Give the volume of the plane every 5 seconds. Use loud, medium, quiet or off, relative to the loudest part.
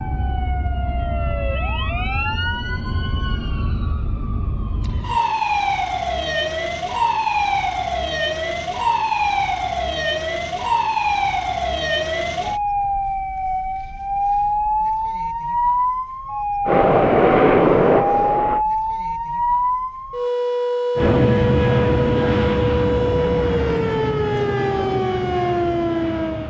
off, off, off, loud, medium, quiet.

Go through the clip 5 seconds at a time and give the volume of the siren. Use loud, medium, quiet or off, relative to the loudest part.
medium, loud, loud, loud, loud, loud.